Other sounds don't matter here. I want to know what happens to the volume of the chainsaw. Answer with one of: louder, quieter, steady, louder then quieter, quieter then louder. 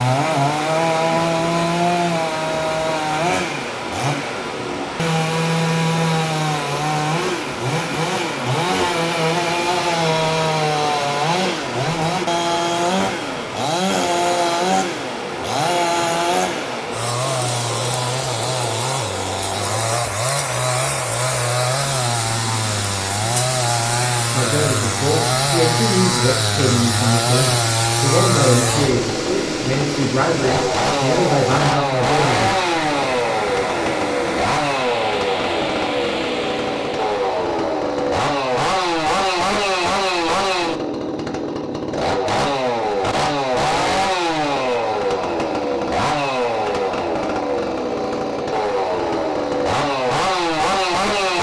steady.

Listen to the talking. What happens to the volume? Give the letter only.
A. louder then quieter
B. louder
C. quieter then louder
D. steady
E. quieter
D.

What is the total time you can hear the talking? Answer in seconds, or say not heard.
8 s.